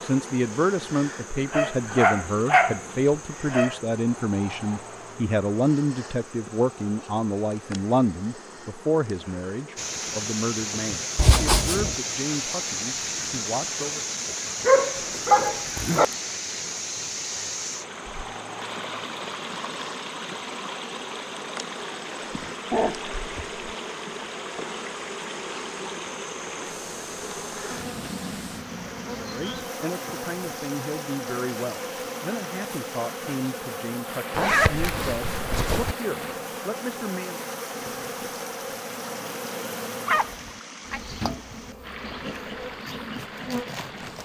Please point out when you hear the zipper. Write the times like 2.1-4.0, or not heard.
11.2-11.9, 14.9-16.1, 34.3-36.0.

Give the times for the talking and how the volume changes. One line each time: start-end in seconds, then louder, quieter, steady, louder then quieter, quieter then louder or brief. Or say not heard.
0.0-14.1 quieter
29.2-37.4 steady.